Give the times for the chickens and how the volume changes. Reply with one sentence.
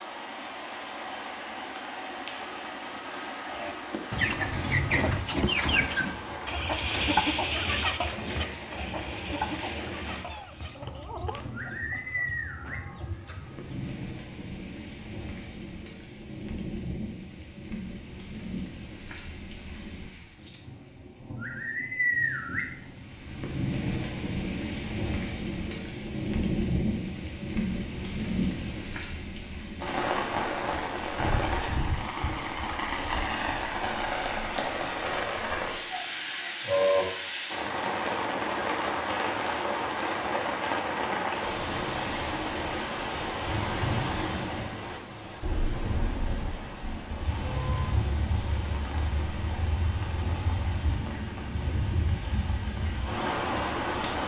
The chickens can be heard from 3.4 to 13.9 s, getting quieter.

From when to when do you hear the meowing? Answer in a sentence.
The meowing can be heard from 10.2 to 11.4 s.